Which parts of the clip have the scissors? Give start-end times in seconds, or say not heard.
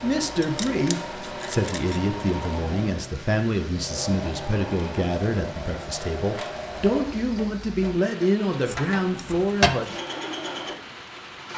0.4-2.0, 8.7-10.0.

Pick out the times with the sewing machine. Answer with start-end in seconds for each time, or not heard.
0.0-11.5.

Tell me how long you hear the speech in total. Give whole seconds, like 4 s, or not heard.
10 s.